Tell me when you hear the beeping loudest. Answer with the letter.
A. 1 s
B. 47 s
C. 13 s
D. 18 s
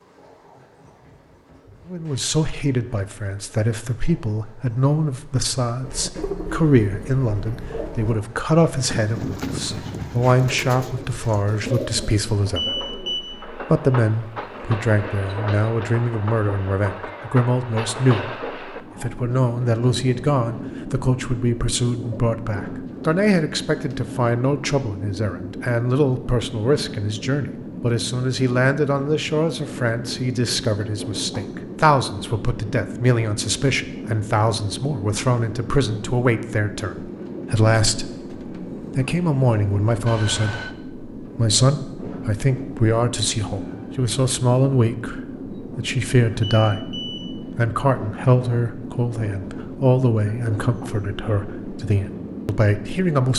C.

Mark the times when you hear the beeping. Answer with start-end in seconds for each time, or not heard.
12.6-13.2, 46.4-47.2.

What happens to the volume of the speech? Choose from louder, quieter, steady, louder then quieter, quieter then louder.
steady.